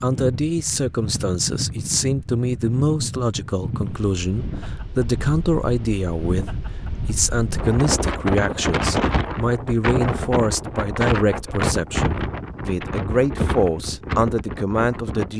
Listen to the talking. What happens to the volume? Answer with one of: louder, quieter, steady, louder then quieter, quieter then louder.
steady.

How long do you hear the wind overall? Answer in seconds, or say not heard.
15 s.